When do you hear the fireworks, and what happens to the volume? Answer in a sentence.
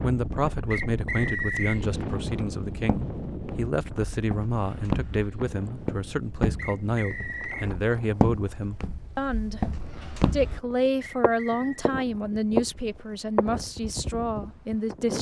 The fireworks can't be heard in this clip.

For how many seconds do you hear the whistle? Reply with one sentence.
You can hear the whistle for 3 seconds altogether.